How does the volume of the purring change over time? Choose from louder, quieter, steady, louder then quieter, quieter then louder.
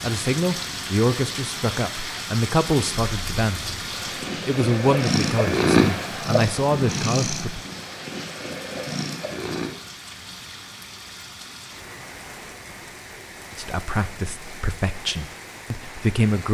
louder then quieter.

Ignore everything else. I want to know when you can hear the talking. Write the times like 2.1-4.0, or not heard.
0.0-3.8, 4.5-7.6, 13.6-16.4.